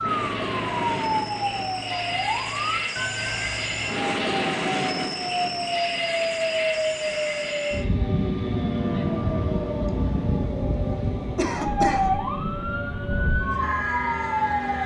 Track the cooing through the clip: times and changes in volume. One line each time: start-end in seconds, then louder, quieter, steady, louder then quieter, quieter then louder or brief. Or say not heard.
not heard.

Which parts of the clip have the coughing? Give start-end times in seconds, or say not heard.
11.3-12.2.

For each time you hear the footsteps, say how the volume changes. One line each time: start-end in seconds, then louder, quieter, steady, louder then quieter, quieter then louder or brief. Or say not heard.
not heard.